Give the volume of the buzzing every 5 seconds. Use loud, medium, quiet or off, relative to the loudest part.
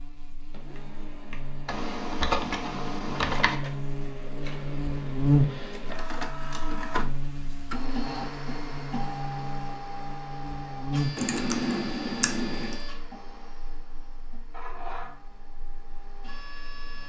medium, loud, medium, quiet.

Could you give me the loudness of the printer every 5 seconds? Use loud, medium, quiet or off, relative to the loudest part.
medium, loud, medium, medium.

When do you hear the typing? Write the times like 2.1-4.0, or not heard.
1.6-3.5, 11.2-12.8.